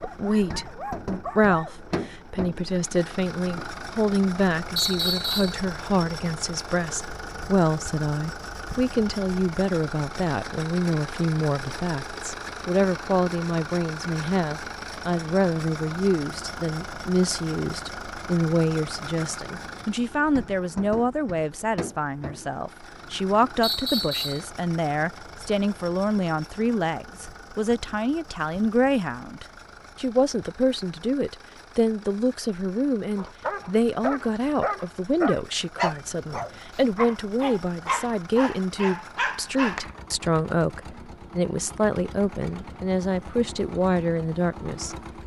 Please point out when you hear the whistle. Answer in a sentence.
You can hear the whistle from 4.8 to 5.6 s and from 23.6 to 24.4 s.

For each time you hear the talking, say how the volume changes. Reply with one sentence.
You can hear the talking from 0.0 to 45.0 s, at a steady volume.